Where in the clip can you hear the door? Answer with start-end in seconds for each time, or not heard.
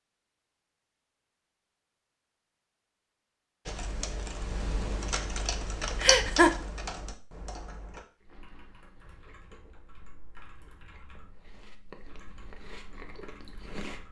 not heard.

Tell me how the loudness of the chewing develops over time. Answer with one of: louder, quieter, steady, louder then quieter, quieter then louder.
louder.